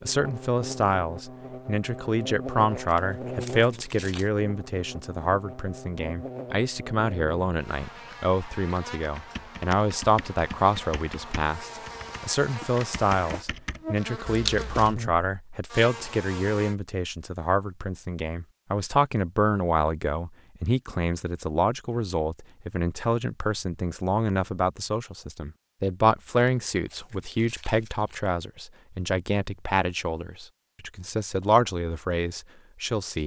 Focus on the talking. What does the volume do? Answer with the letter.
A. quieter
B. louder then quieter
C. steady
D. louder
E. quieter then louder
C.